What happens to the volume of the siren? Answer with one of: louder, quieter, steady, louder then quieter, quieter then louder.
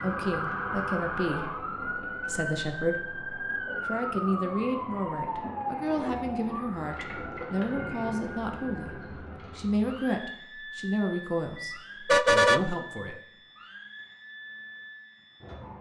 quieter.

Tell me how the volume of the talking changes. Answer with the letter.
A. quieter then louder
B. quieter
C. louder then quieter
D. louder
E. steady
E.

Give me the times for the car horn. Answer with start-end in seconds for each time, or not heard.
11.6-13.1.